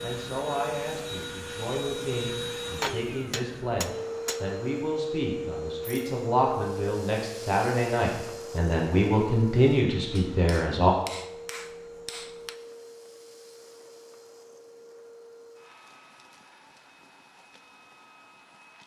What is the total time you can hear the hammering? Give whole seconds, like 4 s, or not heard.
4 s.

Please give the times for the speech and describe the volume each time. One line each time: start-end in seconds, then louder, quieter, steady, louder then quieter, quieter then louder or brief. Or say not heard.
0.0-10.9 louder.